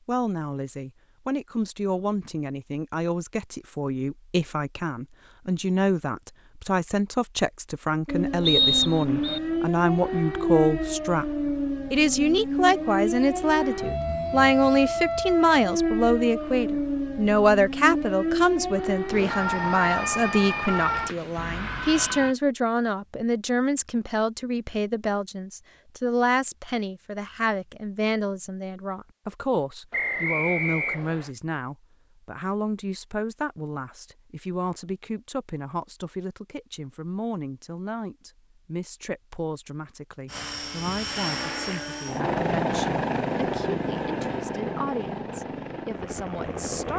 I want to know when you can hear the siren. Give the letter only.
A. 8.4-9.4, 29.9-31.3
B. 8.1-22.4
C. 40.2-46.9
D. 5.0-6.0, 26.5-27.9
B.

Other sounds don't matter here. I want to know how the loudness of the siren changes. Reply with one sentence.
The loudness of the siren stays about the same.